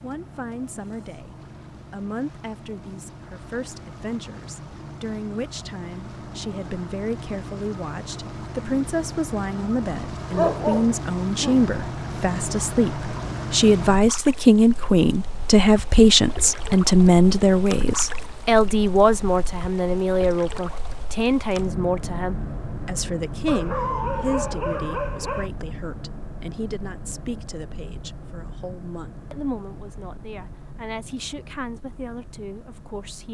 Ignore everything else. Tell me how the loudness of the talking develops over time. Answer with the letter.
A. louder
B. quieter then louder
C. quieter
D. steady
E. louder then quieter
E.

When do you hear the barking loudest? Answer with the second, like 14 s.
11 s.